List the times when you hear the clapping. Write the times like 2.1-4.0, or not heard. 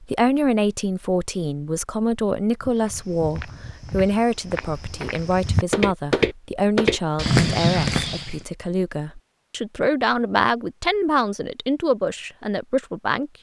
not heard.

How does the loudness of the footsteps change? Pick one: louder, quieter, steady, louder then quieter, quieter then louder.
louder.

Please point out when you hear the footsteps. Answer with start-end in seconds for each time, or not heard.
2.6-8.4.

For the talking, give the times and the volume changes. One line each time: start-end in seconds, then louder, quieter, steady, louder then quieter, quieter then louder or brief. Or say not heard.
0.0-13.3 steady.